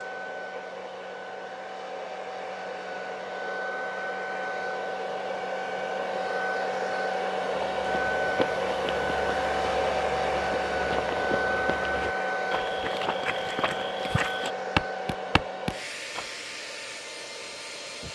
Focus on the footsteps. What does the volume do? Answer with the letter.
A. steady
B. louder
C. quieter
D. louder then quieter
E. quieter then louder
B.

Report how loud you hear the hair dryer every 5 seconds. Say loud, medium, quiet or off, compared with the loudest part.
medium, loud, loud, medium.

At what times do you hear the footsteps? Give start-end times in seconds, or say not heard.
7.5-16.2.